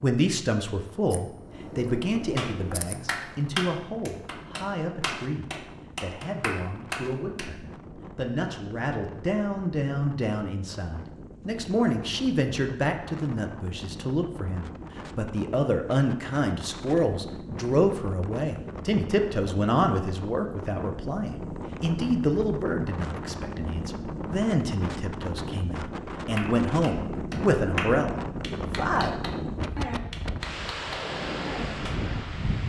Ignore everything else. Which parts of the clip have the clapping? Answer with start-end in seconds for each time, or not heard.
2.4-7.5, 26.4-32.0.